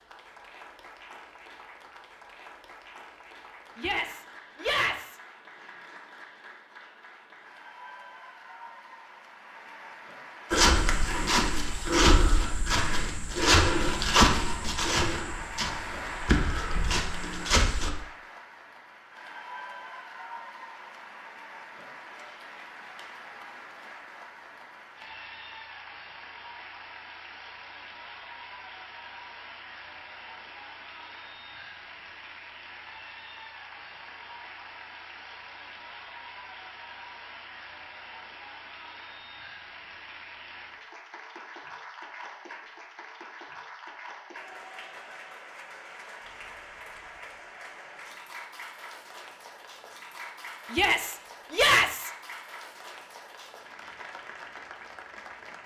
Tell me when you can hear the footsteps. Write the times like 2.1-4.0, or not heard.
10.5-17.9.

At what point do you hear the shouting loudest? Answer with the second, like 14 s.
52 s.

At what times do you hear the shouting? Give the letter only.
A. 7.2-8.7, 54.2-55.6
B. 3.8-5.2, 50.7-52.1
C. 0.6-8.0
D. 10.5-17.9
B.